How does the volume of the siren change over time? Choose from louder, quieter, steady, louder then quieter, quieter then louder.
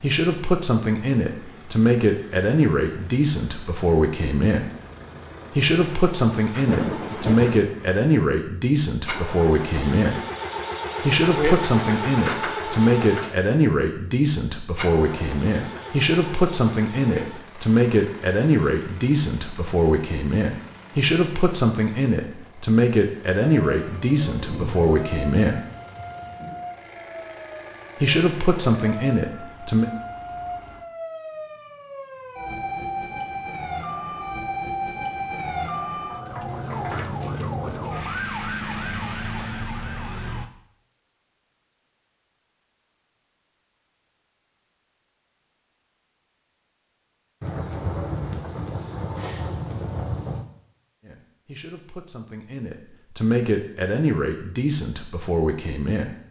louder.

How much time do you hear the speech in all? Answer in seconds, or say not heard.
31 s.